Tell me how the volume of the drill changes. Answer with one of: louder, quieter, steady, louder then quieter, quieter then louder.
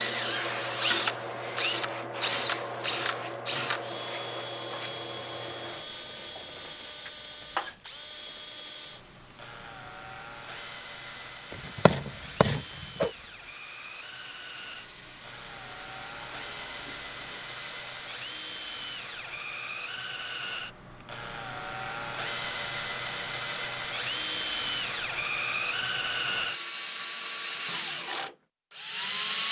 quieter then louder.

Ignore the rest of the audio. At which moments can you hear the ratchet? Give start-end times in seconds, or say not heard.
11.5-13.1.